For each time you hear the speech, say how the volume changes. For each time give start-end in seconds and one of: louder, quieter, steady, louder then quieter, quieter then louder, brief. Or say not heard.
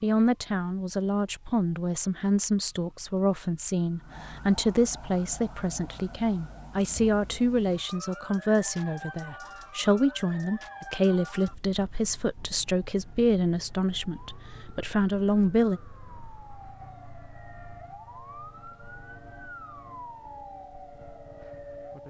0.0-15.8 steady.